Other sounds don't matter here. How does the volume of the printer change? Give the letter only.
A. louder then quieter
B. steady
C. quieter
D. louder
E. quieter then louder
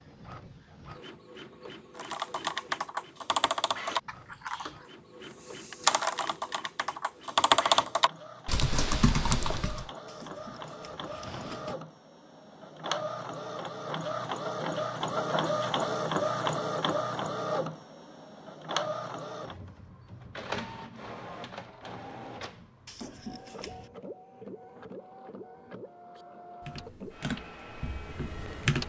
A.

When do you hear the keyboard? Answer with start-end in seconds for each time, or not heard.
1.9-9.8, 26.1-28.8.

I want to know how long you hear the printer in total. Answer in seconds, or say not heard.
29 s.